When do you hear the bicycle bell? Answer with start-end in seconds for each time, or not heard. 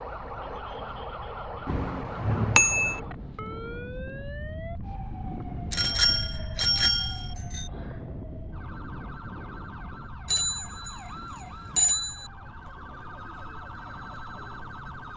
1.6-3.0, 5.7-7.7, 10.2-12.3.